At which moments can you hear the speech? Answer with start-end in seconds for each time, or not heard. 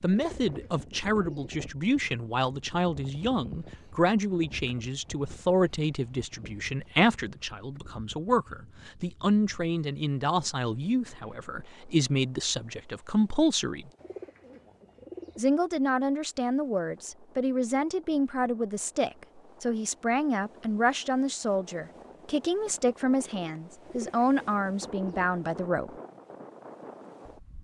0.0-13.9, 15.3-25.9.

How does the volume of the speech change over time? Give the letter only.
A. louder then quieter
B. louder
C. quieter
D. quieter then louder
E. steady
E.